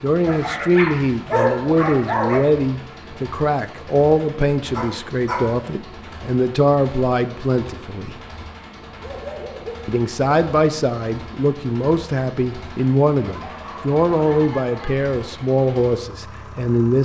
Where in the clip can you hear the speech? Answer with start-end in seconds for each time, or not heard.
0.0-8.2, 9.8-17.0.